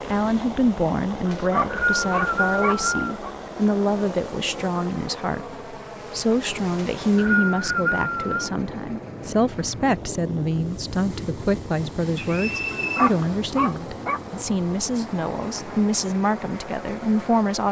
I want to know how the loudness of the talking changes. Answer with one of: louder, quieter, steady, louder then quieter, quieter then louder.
steady.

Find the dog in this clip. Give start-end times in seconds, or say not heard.
1.1-3.3, 12.6-14.2.